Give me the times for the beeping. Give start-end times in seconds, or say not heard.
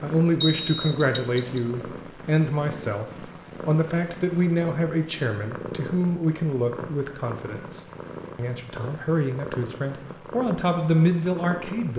0.4-1.6.